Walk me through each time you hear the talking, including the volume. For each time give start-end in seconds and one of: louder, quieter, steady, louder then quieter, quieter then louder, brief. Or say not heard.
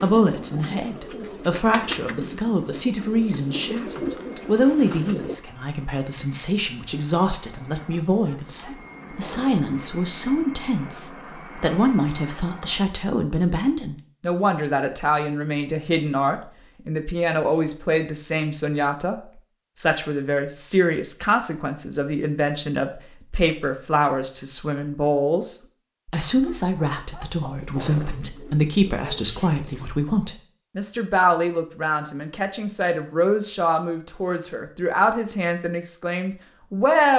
0.0-37.1 steady.